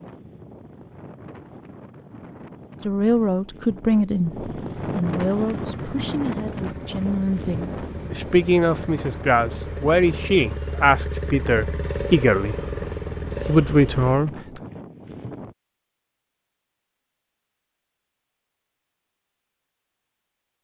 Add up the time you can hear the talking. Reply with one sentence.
You can hear the talking for 11 seconds altogether.